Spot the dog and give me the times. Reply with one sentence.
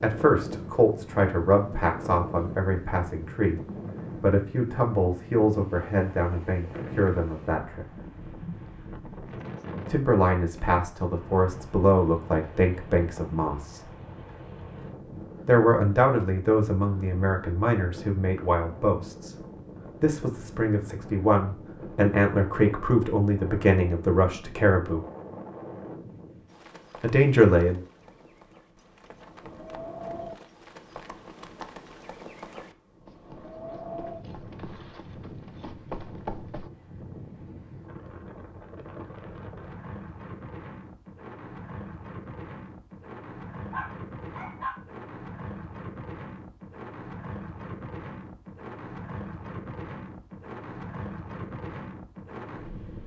You can hear the dog from 43.7 to 44.8 s.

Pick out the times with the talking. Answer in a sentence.
You can hear the talking from 0.0 to 8.0 s, from 9.8 to 13.8 s, from 15.4 to 19.4 s, from 20.0 to 25.1 s and from 27.0 to 27.8 s.